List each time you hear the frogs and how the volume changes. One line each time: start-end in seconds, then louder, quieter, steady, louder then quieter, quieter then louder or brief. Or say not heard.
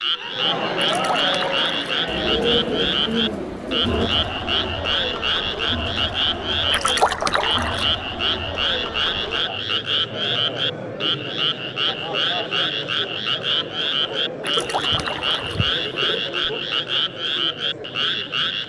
0.0-18.6 steady.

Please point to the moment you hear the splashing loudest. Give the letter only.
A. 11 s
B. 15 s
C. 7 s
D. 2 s
C.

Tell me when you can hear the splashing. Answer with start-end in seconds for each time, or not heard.
0.8-1.8, 6.7-7.9, 14.4-15.7.